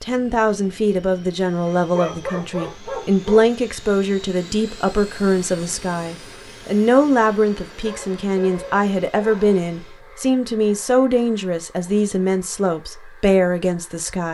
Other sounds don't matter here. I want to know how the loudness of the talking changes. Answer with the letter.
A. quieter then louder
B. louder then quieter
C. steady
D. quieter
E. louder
C.